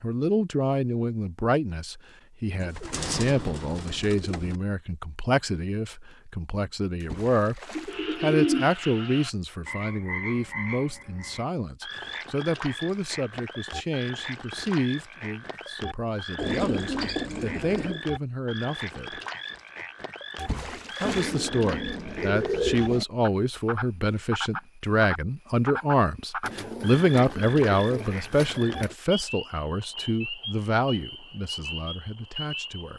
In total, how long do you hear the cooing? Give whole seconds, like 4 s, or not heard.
9 s.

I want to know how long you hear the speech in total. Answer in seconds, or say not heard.
31 s.